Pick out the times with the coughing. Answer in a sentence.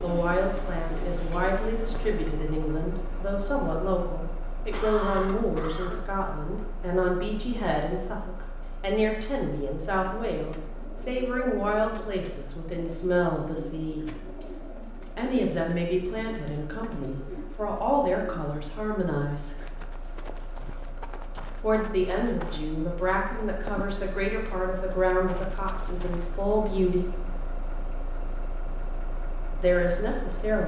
You can hear the coughing from 4.7 to 6.1 s.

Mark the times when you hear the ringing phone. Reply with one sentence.
You can't hear the ringing phone here.